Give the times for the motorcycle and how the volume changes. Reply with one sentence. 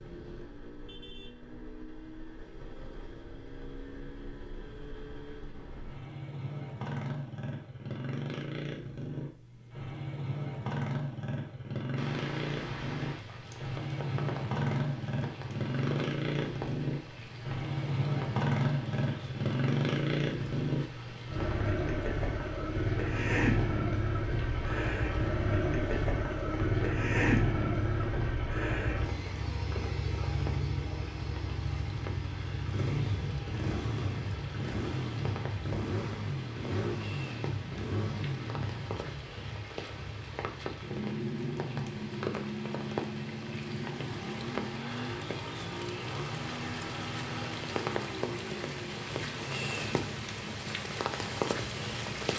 The motorcycle can be heard from 0.0 to 52.3 s, getting louder then quieter.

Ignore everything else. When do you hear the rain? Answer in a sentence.
The rain can be heard from 11.9 to 52.3 s.